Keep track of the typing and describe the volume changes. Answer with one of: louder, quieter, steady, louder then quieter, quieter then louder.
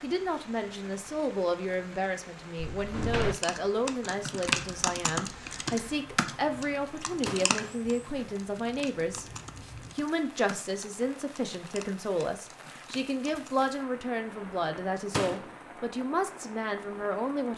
quieter.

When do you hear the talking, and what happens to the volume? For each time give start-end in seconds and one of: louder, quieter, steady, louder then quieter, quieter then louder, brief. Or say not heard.
0.0-17.5 steady.